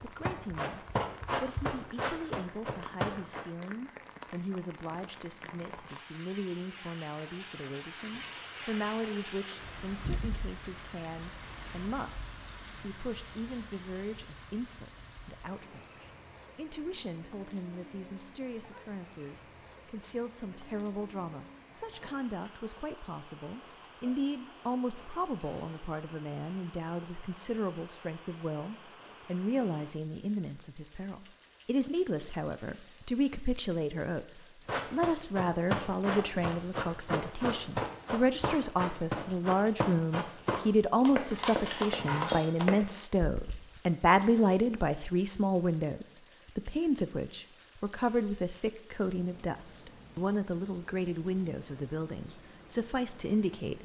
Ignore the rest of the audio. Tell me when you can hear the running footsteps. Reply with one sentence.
The running footsteps can be heard from 0.0 to 3.5 s and from 34.6 to 43.6 s.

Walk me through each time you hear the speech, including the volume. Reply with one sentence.
The speech can be heard from 0.0 to 53.8 s, getting louder.